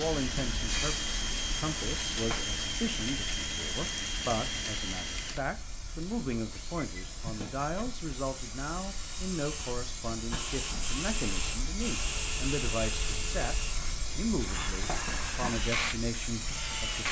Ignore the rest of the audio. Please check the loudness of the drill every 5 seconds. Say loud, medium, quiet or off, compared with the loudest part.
loud, medium, loud, loud.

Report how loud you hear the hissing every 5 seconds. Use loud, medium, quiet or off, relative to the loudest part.
loud, medium, loud, loud.